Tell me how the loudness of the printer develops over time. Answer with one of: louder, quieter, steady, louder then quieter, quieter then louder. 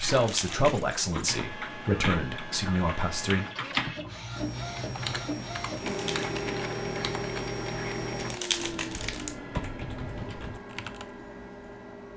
louder then quieter.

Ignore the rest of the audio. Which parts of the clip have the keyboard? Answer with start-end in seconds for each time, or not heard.
0.0-11.1.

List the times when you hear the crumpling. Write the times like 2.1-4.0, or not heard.
0.1-0.8, 5.8-6.3, 8.2-9.3.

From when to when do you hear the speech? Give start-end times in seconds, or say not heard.
0.0-3.5.